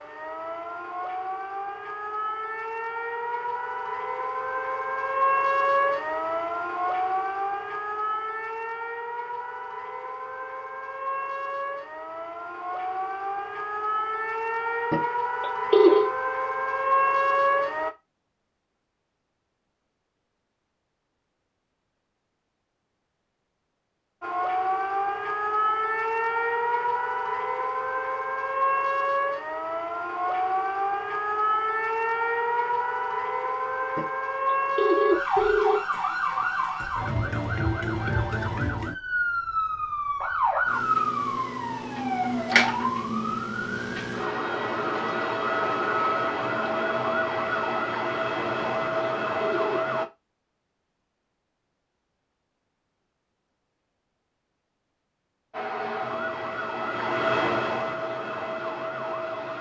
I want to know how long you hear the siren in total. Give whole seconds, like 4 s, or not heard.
48 s.